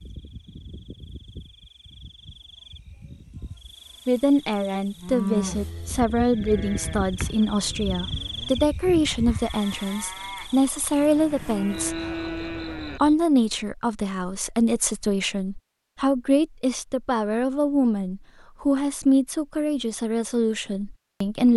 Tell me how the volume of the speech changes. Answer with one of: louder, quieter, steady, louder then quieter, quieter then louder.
steady.